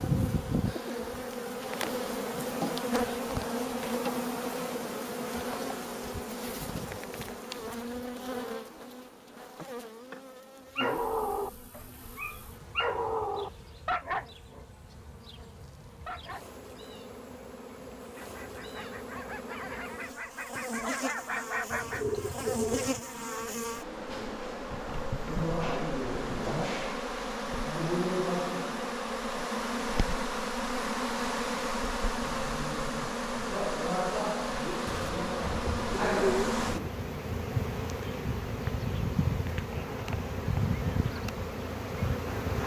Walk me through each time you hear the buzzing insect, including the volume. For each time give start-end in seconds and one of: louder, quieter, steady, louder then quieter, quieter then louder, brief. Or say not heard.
0.0-42.6 quieter then louder.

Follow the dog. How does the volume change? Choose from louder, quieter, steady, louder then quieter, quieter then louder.
quieter then louder.